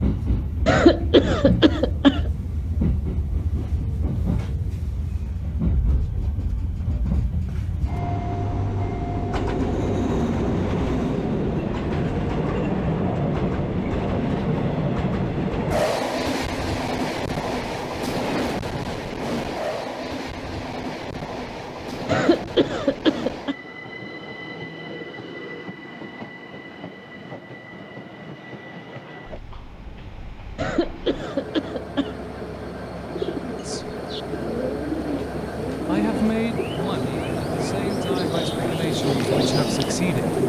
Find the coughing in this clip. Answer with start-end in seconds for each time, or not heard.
0.7-2.3, 22.1-23.6, 30.6-32.2.